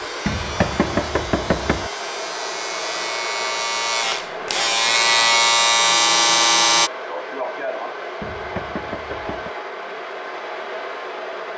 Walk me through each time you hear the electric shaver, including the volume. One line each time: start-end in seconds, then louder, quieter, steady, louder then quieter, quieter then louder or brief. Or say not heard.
0.0-6.9 louder.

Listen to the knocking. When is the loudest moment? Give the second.
1 s.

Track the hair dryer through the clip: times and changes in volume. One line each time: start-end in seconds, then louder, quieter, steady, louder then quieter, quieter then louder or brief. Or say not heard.
0.0-11.5 steady.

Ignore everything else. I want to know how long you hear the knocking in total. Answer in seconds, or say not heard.
3 s.